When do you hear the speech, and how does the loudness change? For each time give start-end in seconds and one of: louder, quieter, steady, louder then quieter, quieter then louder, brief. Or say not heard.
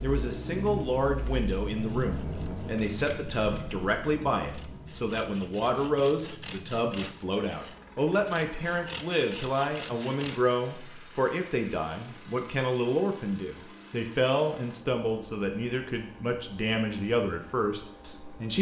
0.0-18.5 steady.